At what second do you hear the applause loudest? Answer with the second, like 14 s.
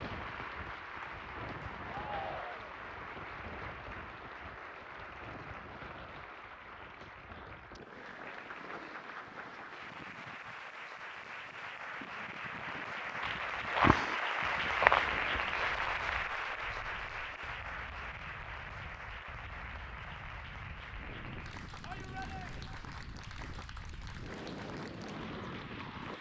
15 s.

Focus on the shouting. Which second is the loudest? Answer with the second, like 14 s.
2 s.